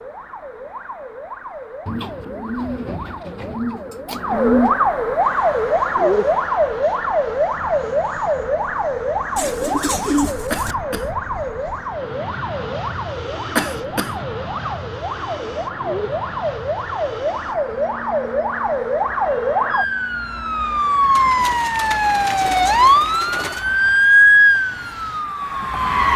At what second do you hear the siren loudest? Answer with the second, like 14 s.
24 s.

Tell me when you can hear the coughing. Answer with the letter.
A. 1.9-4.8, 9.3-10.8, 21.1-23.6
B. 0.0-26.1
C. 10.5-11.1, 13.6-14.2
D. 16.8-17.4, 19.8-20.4
C.